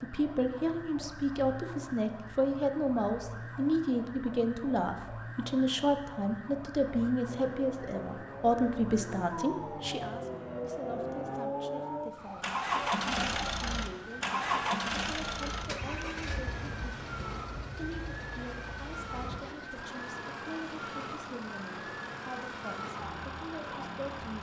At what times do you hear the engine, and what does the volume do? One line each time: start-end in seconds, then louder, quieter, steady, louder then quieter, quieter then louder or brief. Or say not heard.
7.2-24.3 louder then quieter.